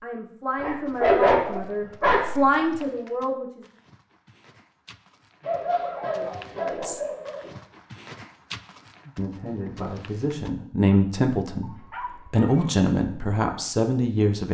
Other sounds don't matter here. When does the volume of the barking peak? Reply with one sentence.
The volume of the barking peaks at 1 second.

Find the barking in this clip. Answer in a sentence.
The barking can be heard from 0.6 to 2.9 s, from 5.5 to 7.5 s and from 11.6 to 12.7 s.